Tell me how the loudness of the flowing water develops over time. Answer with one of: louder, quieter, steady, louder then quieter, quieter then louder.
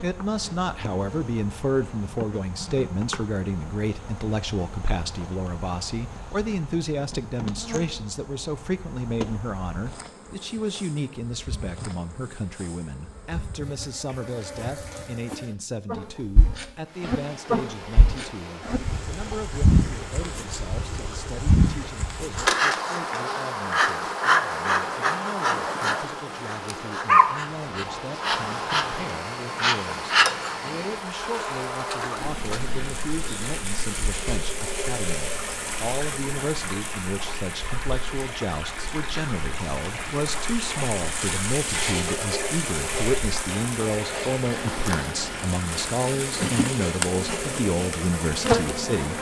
louder.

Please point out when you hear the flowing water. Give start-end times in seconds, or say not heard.
16.9-49.1.